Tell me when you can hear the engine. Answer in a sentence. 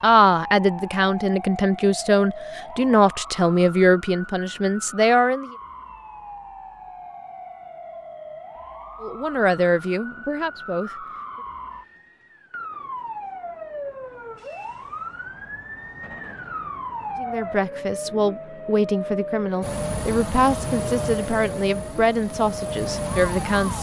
The engine can be heard from 19.6 to 23.7 s.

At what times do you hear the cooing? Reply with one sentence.
The cooing can't be heard in this clip.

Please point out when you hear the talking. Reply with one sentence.
The talking can be heard from 0.0 to 5.5 s, from 9.0 to 11.1 s and from 17.1 to 23.7 s.